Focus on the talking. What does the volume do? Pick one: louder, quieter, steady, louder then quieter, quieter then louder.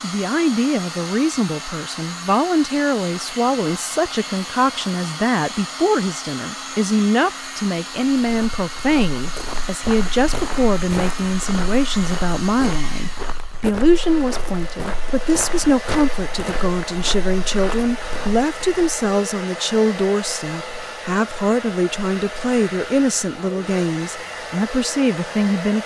steady.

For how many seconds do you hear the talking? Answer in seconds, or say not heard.
26 s.